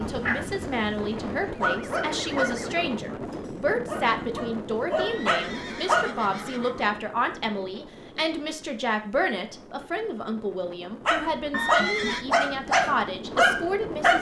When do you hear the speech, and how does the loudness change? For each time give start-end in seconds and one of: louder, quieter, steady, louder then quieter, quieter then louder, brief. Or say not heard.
0.0-14.1 steady.